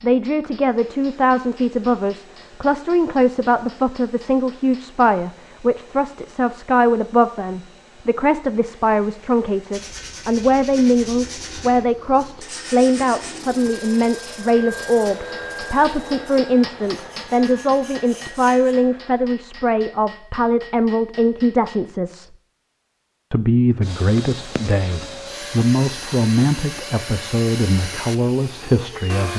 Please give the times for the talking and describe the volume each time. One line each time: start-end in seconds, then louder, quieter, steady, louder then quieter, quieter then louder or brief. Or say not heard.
0.0-22.4 steady
23.3-29.3 steady.